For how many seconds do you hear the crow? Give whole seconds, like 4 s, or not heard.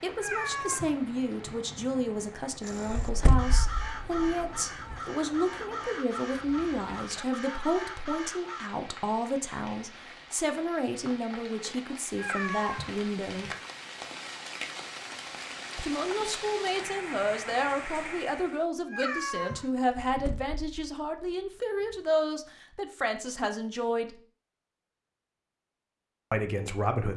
6 s.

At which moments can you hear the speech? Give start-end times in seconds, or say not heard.
0.0-13.5, 15.8-24.1, 26.3-27.1.